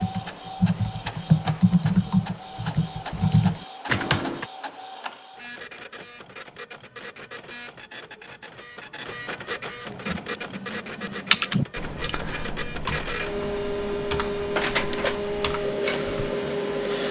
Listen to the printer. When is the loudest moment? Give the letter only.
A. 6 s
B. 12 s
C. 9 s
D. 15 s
D.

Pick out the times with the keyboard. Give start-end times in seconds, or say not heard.
0.0-4.5, 10.0-16.3.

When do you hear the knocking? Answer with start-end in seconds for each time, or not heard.
not heard.